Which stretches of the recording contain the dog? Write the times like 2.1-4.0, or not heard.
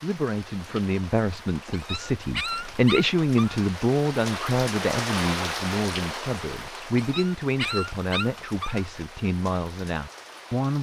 1.7-3.6, 7.0-8.8.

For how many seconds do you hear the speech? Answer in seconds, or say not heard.
11 s.